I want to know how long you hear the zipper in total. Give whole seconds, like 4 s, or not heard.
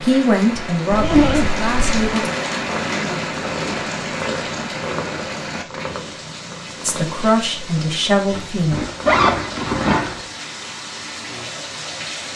3 s.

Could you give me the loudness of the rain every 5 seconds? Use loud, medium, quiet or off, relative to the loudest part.
loud, medium, medium.